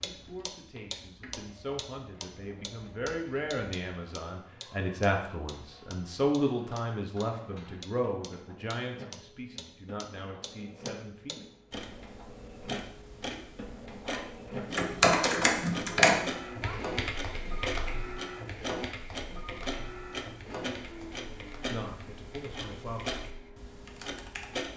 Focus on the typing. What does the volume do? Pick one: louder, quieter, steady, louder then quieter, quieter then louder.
quieter.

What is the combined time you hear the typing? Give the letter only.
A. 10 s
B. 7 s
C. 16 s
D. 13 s
A.